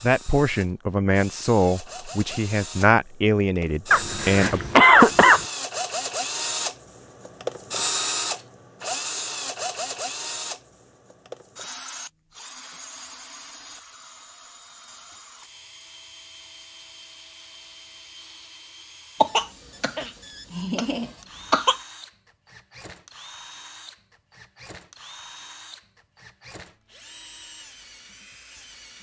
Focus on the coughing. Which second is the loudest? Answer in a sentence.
The volume of the coughing peaks at 5 seconds.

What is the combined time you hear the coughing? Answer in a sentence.
You can hear the coughing for 4 seconds altogether.